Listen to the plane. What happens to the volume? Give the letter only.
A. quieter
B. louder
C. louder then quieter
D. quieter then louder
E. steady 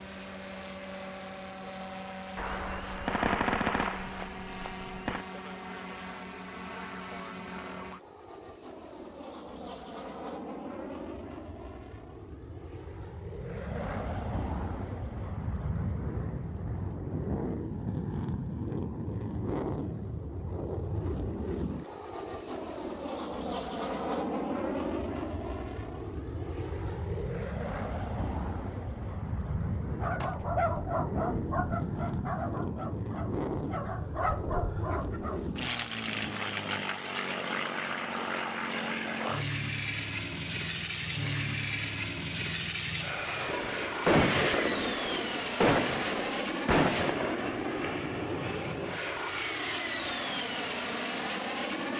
B.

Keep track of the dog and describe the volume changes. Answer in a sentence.
The loudness of the dog goes down, then up.